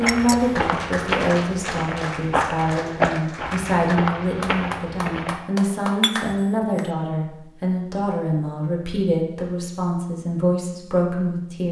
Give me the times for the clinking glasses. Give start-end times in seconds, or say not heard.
0.1-0.5, 6.0-6.8.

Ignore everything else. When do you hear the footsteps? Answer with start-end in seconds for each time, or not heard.
0.0-5.4.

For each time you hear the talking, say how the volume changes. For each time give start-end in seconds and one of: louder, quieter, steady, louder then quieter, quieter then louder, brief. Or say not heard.
0.0-11.6 steady.